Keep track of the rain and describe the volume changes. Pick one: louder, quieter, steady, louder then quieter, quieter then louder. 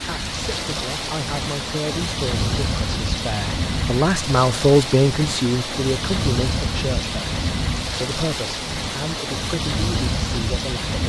steady.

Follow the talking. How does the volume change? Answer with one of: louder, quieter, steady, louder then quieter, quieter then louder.
louder then quieter.